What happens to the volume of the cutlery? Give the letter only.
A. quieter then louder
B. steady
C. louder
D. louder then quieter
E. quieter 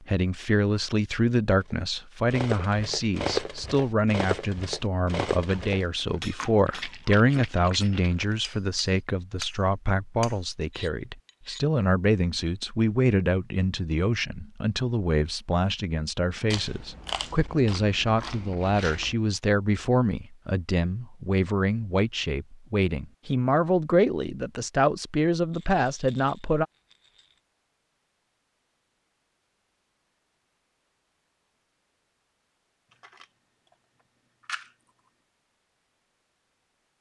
E.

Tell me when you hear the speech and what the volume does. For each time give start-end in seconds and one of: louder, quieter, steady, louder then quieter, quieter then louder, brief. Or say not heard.
0.1-26.6 steady.